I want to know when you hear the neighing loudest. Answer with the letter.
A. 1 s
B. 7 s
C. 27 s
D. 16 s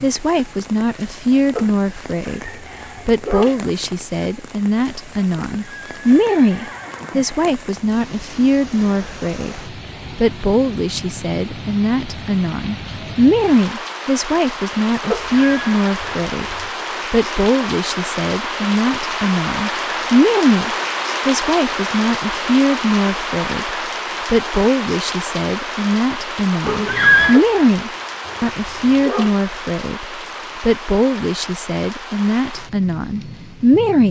C.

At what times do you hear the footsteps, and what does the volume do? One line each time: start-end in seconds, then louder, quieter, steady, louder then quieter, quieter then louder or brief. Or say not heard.
not heard.